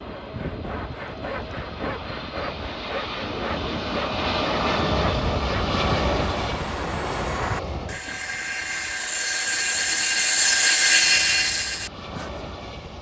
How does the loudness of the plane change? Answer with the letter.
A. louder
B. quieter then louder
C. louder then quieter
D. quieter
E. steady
C.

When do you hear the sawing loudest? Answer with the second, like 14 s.
11 s.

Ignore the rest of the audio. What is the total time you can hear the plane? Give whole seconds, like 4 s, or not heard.
13 s.